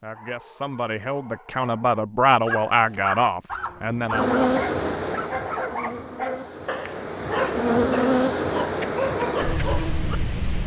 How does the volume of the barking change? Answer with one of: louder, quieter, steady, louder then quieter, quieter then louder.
louder.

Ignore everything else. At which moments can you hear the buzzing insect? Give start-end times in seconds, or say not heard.
4.1-10.6.